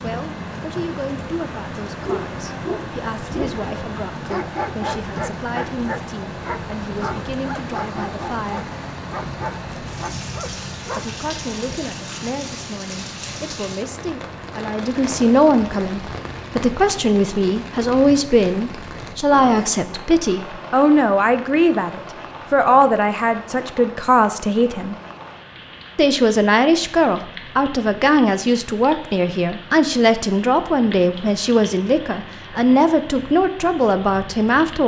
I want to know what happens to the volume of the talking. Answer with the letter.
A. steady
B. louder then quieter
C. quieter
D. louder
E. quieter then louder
D.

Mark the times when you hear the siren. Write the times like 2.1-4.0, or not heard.
not heard.